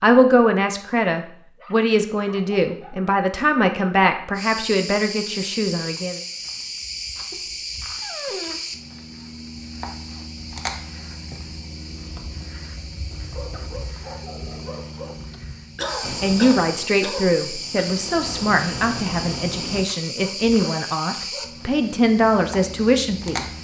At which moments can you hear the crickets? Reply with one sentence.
You can hear the crickets from 4.3 to 23.6 s.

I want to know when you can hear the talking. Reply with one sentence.
You can hear the talking from 0.0 to 6.2 s and from 16.2 to 23.4 s.